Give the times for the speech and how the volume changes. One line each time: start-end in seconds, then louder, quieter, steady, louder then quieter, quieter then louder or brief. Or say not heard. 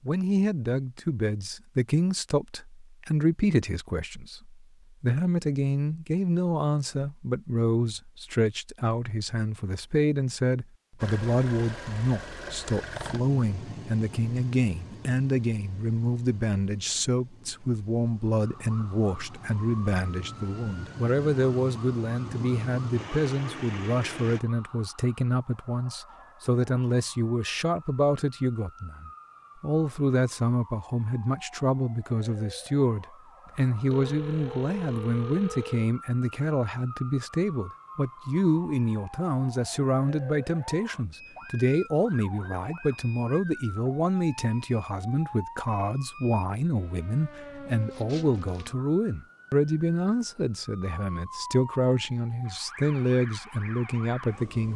0.1-54.7 steady.